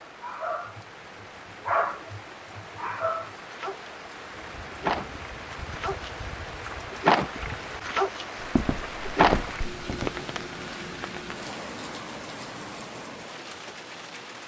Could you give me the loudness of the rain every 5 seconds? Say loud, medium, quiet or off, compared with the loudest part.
medium, loud, loud.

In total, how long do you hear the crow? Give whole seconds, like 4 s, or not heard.
not heard.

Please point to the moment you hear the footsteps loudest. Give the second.
9 s.